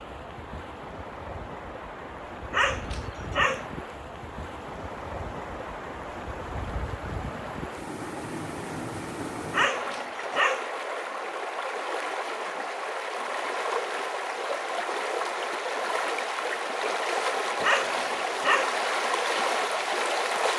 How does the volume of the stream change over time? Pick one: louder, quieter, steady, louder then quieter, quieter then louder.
louder.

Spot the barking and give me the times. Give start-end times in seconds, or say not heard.
2.5-3.6, 9.5-10.7, 17.6-18.8.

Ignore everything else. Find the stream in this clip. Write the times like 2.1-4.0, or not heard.
0.0-20.5.